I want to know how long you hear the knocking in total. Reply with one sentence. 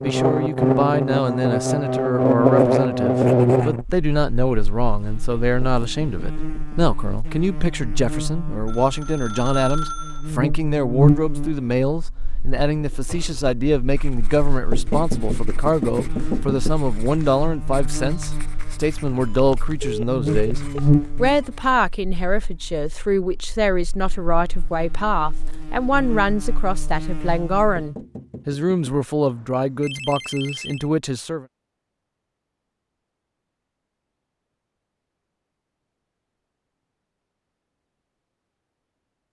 The knocking can be heard for 4 seconds in total.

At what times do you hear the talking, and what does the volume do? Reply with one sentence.
You can hear the talking from 0.0 to 31.4 s, at a steady volume.